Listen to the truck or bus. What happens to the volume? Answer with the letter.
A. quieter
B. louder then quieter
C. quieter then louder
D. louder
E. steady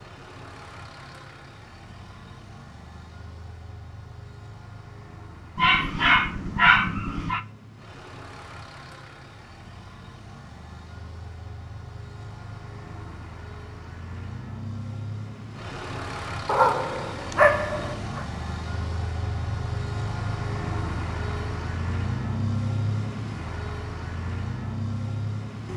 D.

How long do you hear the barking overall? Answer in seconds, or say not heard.
4 s.